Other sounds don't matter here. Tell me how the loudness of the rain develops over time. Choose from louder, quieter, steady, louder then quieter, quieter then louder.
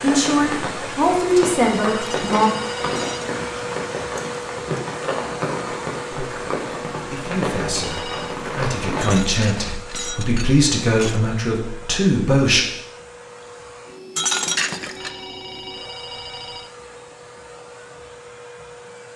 steady.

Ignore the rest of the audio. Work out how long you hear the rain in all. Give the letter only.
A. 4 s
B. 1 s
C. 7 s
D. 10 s
D.